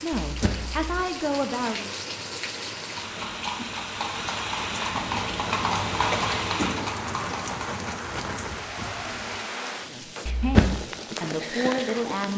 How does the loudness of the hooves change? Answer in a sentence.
The loudness of the hooves goes up, then down.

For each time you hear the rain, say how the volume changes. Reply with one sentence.
The rain can be heard from 0.0 to 12.3 s, at a steady volume.